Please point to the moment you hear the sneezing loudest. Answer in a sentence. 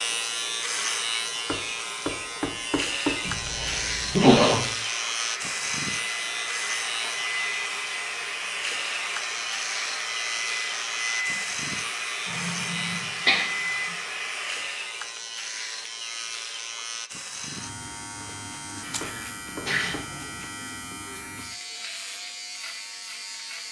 The volume of the sneezing peaks at 4 seconds.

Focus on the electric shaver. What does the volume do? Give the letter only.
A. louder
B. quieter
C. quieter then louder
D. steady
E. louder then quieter
B.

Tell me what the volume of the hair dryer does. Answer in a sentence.
The loudness of the hair dryer stays about the same.